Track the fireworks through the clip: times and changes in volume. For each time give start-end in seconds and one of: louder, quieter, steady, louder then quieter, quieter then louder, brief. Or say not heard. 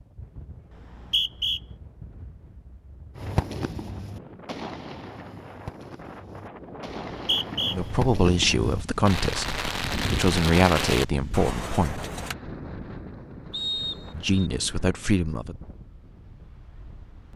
3.1-12.3 quieter then louder.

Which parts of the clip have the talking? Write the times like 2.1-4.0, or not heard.
7.7-12.1, 14.1-15.6.